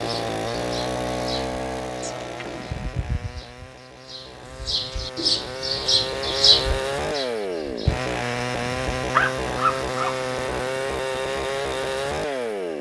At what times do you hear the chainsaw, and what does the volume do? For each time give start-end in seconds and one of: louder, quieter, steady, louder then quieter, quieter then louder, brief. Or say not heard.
0.0-12.7 quieter then louder.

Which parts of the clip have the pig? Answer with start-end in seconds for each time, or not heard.
not heard.